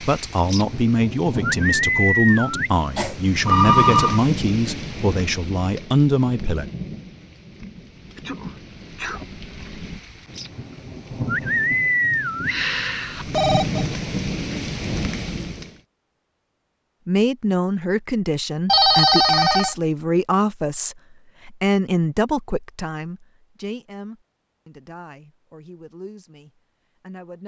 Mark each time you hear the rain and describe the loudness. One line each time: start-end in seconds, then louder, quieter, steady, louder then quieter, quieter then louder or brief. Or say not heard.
0.0-15.8 quieter then louder.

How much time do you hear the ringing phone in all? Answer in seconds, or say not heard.
4 s.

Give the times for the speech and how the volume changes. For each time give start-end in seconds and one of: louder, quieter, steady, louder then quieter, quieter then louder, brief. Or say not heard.
0.0-6.7 steady
17.1-27.4 quieter.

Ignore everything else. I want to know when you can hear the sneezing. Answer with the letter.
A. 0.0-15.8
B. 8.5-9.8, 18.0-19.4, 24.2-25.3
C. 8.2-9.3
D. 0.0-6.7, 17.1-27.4
C.